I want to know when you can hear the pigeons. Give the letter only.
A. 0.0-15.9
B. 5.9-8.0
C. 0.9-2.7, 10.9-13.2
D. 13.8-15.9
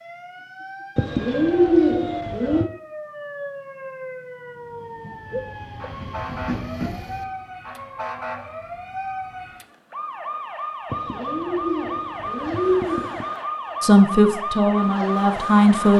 C.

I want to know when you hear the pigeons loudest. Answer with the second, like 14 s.
2 s.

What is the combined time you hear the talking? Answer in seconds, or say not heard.
2 s.